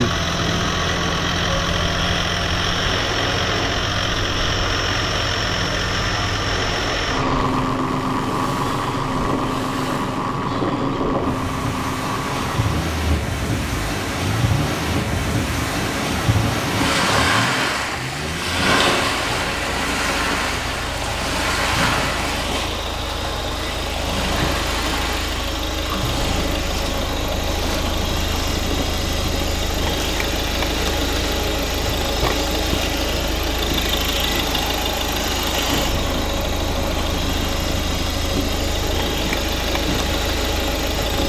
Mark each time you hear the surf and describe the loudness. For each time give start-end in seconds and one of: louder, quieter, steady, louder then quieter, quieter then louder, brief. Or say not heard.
0.0-41.2 louder then quieter.